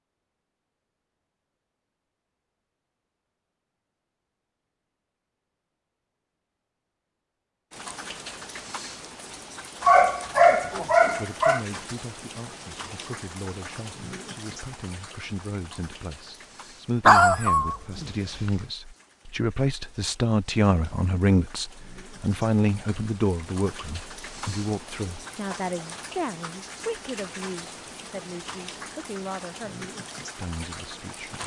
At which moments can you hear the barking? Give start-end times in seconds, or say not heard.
9.8-11.6, 17.1-18.5.